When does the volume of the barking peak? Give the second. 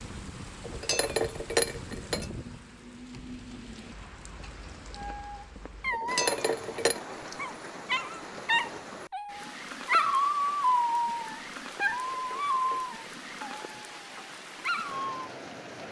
10 s.